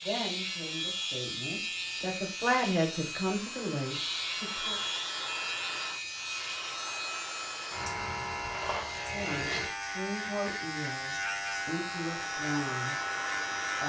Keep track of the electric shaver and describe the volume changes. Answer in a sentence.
The volume of the electric shaver stays about the same.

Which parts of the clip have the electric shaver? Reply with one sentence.
You can hear the electric shaver from 0.0 to 13.8 s.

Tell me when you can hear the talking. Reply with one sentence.
The talking can be heard from 0.0 to 4.8 s and from 9.1 to 12.9 s.